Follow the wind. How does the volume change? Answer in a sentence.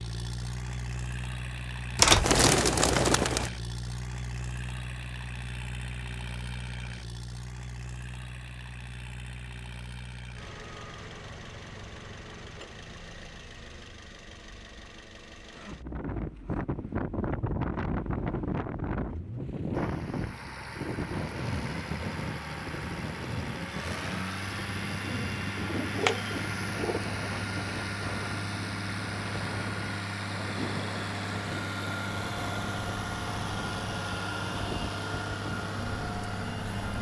The loudness of the wind goes down.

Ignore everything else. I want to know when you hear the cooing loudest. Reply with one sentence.
The volume of the cooing peaks at 2 seconds.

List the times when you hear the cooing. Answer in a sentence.
The cooing can be heard from 1.9 to 3.5 s and from 25.0 to 27.0 s.